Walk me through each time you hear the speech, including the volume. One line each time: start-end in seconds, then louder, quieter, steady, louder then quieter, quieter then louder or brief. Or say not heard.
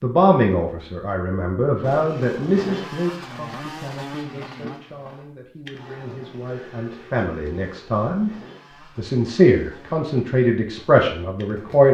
0.0-8.3 quieter then louder
8.9-11.8 brief.